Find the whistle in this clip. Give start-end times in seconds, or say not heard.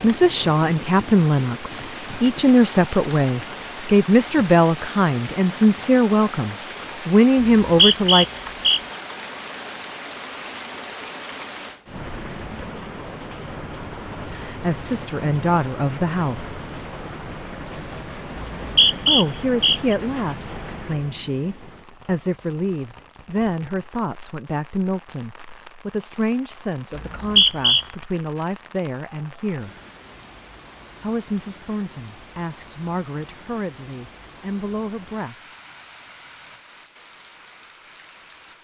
7.4-8.8, 18.6-19.9, 26.9-27.9.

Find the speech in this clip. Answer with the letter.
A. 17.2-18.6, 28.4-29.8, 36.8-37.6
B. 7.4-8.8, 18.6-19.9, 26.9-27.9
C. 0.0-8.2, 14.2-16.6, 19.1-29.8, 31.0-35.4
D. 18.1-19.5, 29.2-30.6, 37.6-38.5
C.